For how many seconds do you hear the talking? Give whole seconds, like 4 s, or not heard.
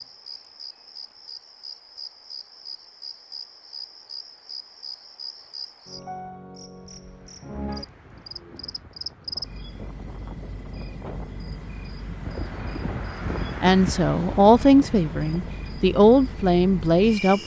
4 s.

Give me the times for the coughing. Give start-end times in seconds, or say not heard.
not heard.